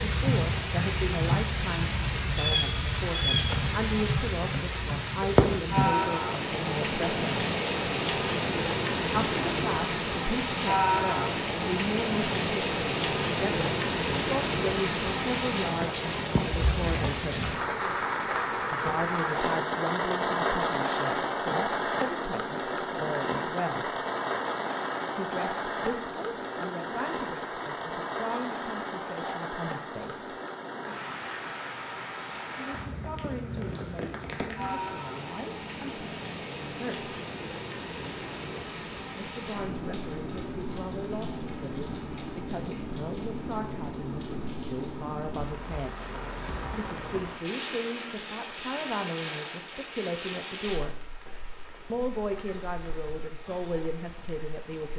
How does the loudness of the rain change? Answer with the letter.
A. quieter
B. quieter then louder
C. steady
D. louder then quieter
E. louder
A.